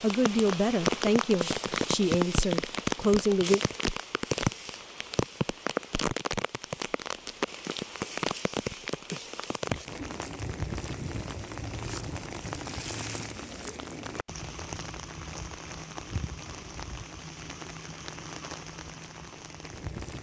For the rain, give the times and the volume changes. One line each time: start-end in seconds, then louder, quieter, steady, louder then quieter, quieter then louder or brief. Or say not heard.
0.0-20.1 quieter.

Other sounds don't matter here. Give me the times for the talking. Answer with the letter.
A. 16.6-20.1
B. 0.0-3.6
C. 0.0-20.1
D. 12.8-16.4
B.